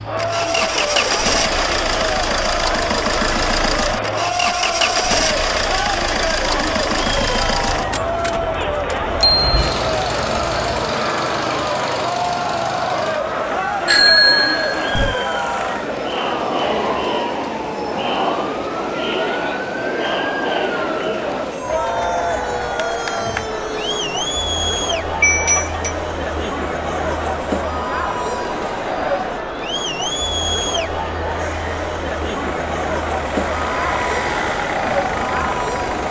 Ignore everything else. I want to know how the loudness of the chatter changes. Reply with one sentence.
The volume of the chatter stays about the same.